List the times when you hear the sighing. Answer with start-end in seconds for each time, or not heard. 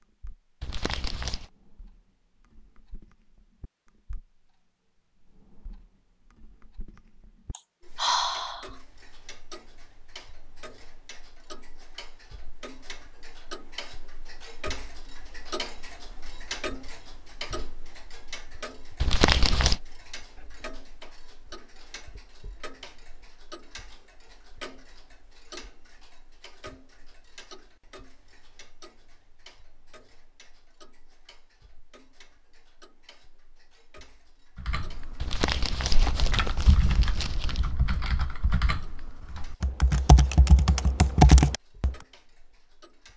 7.5-8.7.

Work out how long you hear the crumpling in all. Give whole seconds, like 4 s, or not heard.
4 s.